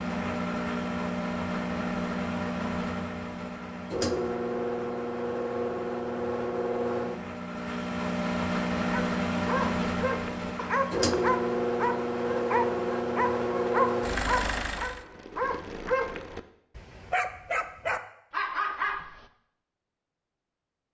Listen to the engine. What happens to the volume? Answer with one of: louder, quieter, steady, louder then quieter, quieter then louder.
steady.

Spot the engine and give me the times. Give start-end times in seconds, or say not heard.
0.0-15.1.